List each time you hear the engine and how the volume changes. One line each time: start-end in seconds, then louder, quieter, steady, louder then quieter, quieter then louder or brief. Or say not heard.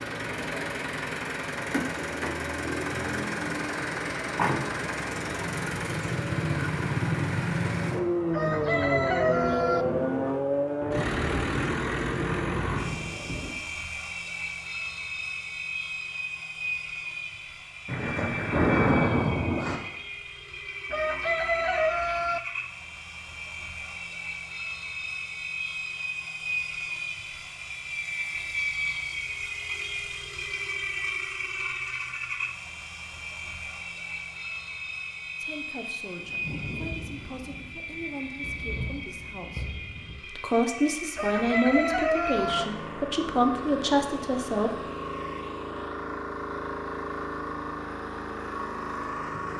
0.0-49.5 quieter.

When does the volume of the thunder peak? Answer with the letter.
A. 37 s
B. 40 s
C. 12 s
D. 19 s
D.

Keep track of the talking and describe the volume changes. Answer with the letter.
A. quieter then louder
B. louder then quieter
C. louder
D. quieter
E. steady
C.